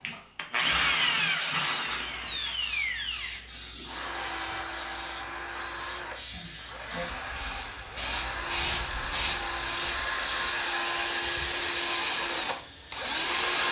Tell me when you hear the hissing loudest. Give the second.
9 s.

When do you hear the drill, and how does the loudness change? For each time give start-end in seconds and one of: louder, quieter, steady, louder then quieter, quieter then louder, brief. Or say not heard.
0.0-13.6 quieter then louder.